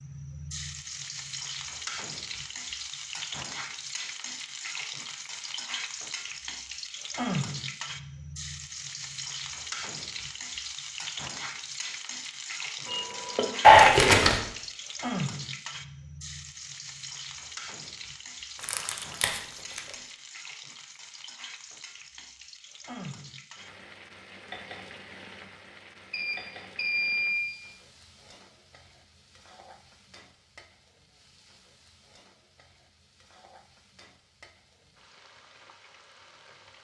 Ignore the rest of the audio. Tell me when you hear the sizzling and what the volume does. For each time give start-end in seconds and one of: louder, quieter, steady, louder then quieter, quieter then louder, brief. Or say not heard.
0.0-36.7 quieter.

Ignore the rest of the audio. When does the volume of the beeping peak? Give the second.
27 s.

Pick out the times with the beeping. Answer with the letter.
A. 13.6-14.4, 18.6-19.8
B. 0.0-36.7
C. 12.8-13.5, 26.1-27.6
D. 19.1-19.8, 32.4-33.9
C.